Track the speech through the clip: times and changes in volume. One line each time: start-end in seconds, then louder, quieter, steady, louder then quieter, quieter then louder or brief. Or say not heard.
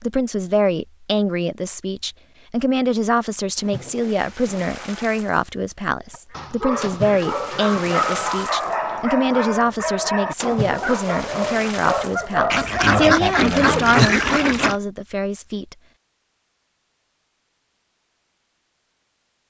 0.0-15.8 steady.